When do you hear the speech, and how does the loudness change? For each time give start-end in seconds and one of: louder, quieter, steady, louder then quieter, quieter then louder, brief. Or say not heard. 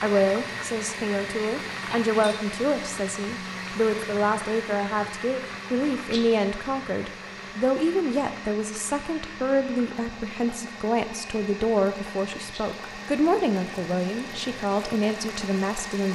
0.0-16.1 steady.